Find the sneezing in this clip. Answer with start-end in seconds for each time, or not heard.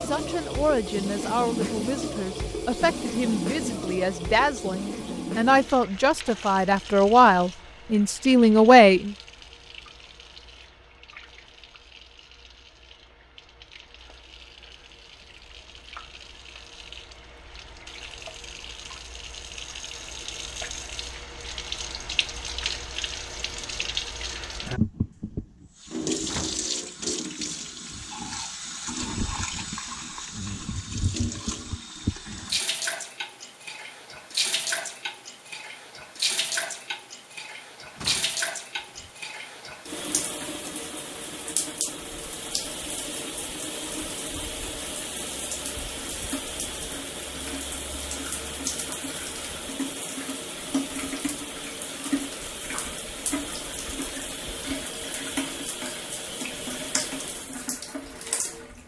not heard.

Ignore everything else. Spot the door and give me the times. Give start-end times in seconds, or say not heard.
26.2-26.6, 38.0-39.1.